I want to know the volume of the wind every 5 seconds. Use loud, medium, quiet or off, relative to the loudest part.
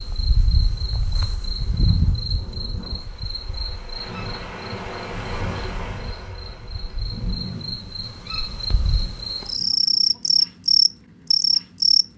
loud, loud, off.